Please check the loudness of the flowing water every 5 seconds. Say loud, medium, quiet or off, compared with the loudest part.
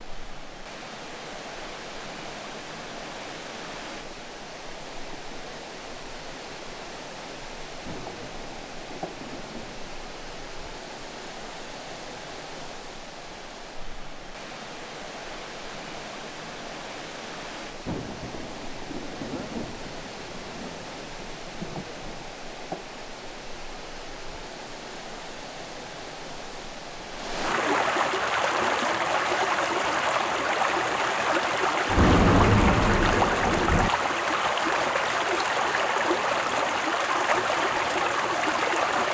quiet, quiet, quiet, quiet, quiet, loud, loud, loud.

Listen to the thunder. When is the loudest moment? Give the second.
32 s.